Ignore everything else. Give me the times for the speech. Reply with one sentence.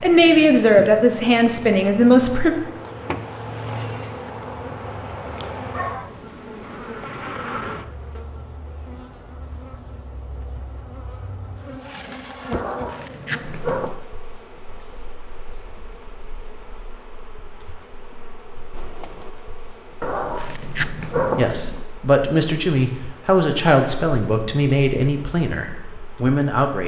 You can hear the speech from 0.0 to 2.5 s and from 21.4 to 26.8 s.